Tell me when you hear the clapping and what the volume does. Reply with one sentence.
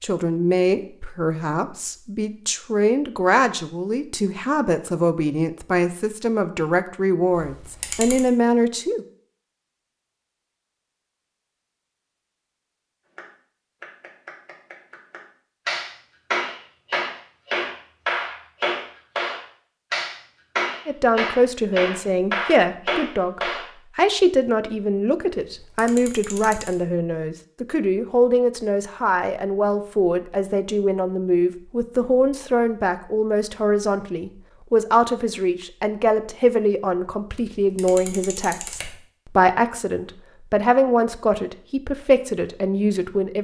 You can hear the clapping from 13.2 to 23.6 s, getting louder.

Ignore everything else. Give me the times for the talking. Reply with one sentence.
The talking can be heard from 0.0 to 9.1 s and from 20.9 to 43.3 s.